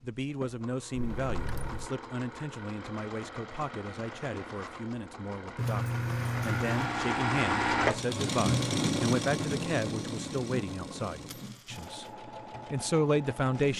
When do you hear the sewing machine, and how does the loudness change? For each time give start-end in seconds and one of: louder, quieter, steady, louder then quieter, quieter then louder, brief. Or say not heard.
0.0-13.7 louder then quieter.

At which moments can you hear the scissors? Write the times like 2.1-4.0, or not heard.
not heard.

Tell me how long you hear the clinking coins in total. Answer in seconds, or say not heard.
3 s.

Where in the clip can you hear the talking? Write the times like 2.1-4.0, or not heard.
0.0-12.1, 12.7-13.7.